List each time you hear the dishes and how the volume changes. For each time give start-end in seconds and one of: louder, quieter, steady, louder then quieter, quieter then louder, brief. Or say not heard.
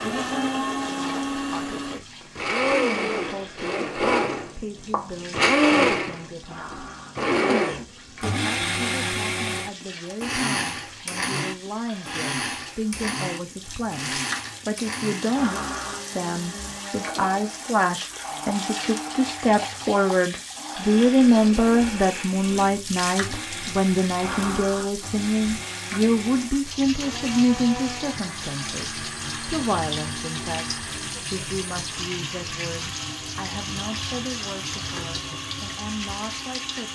not heard.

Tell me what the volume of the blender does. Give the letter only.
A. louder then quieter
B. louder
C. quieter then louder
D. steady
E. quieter
E.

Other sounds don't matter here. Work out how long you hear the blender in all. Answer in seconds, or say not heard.
37 s.